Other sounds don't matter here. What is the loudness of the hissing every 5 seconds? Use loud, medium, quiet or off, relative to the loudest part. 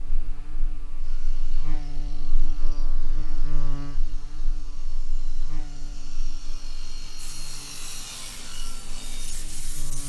off, loud.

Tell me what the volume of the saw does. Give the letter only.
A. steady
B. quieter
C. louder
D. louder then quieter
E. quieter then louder
C.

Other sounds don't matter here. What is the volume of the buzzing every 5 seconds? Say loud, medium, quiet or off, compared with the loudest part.
loud, medium.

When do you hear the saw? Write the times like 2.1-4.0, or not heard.
0.0-9.8.